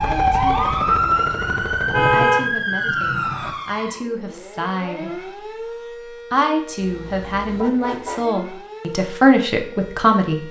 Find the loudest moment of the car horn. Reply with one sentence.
The loudest moment of the car horn is at 2 seconds.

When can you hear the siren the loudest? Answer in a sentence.
The volume of the siren peaks at 1 second.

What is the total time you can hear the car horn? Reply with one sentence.
The car horn can be heard for 3 seconds in total.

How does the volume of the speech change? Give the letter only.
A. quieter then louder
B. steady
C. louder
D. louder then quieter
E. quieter
C.